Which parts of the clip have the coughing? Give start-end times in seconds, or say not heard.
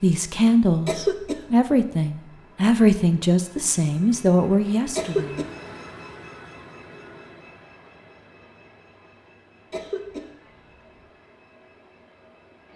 0.8-1.4, 5.0-5.5, 9.7-10.2.